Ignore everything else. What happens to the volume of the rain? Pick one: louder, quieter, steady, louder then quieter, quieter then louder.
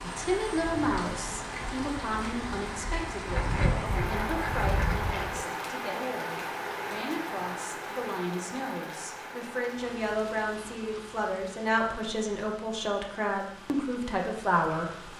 quieter.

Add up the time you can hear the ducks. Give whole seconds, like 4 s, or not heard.
2 s.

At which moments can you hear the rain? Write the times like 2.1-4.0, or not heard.
0.0-15.1.